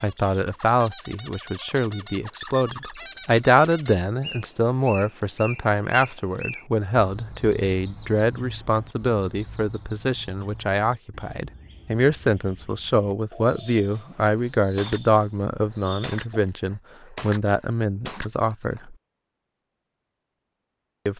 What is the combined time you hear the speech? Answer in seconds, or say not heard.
19 s.